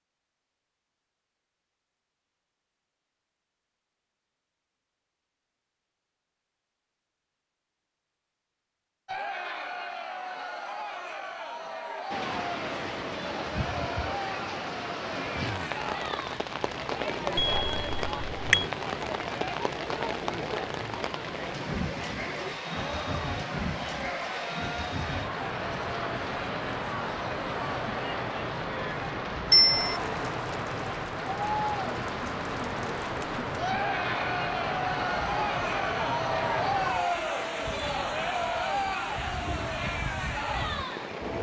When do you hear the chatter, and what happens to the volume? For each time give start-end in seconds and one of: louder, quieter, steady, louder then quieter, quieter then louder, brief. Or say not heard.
9.1-41.3 louder.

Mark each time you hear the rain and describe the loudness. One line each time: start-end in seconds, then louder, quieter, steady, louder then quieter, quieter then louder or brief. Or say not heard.
12.1-41.3 steady.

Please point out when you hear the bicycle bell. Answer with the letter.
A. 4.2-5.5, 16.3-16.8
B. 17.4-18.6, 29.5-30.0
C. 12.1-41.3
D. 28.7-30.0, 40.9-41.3
B.